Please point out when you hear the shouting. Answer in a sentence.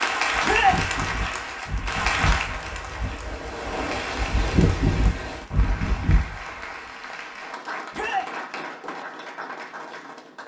You can hear the shouting from 0.4 to 0.8 s and from 7.9 to 8.3 s.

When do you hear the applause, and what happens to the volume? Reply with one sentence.
The applause can be heard from 0.0 to 10.4 s, getting quieter.